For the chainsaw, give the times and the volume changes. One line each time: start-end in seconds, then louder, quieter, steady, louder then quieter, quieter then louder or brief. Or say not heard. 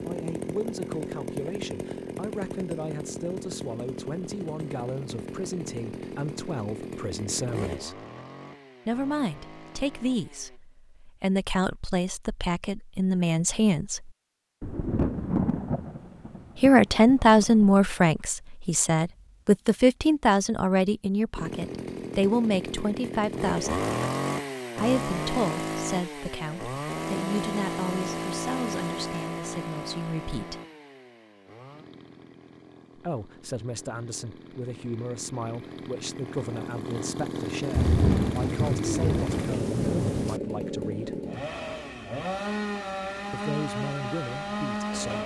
0.0-10.6 quieter
21.4-45.2 quieter then louder.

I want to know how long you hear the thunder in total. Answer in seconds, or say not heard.
6 s.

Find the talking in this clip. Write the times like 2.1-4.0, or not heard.
0.0-8.0, 8.8-14.1, 16.6-23.9, 24.8-30.6, 33.0-41.2, 43.3-45.2.